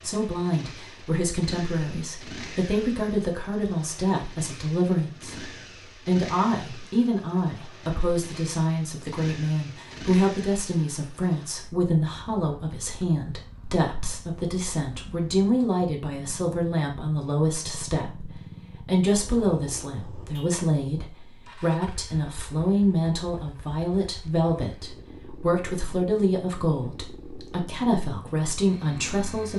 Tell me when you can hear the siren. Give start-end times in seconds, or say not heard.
not heard.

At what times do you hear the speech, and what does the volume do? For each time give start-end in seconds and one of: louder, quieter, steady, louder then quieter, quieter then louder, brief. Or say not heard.
0.0-29.5 steady.